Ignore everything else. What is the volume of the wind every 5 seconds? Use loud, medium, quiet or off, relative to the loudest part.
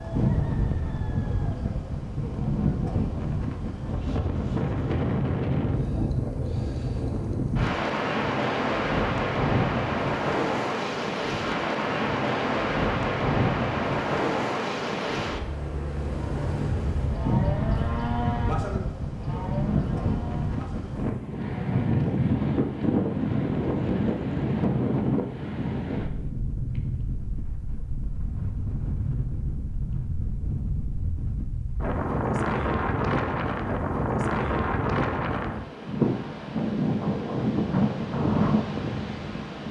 loud, loud, loud, loud, loud, medium, loud, loud.